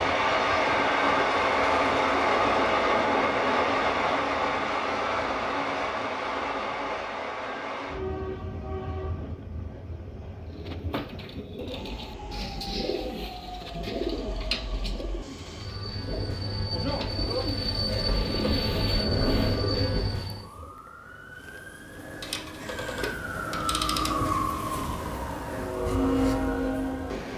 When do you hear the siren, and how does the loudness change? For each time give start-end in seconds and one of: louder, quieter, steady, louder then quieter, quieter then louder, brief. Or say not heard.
20.1-27.3 louder then quieter.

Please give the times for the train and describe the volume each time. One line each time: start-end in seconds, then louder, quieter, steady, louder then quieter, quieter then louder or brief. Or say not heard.
0.0-20.4 quieter then louder
25.4-27.3 brief.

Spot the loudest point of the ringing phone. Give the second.
24 s.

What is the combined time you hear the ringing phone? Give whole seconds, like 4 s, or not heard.
2 s.